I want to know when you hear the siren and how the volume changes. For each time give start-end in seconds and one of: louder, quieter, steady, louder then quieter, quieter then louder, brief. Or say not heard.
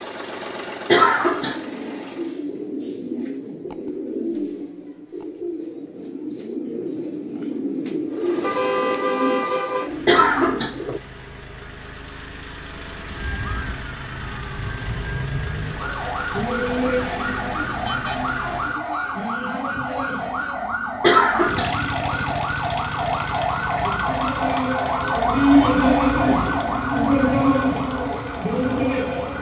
13.1-29.3 louder.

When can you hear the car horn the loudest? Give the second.
9 s.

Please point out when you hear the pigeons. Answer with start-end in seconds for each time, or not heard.
1.1-11.0.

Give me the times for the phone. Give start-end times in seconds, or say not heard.
not heard.